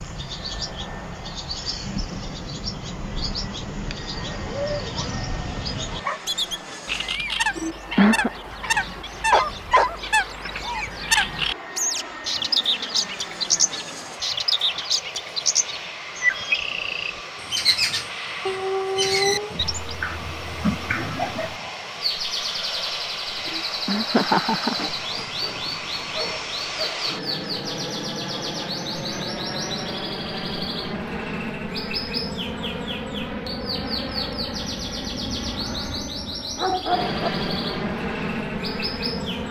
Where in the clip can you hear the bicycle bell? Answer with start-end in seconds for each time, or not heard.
not heard.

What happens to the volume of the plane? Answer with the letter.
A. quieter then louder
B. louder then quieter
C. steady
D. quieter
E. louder
E.